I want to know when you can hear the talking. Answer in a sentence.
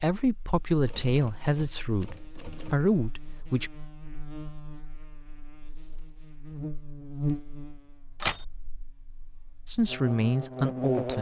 The talking can be heard from 0.0 to 3.7 s and from 9.7 to 11.1 s.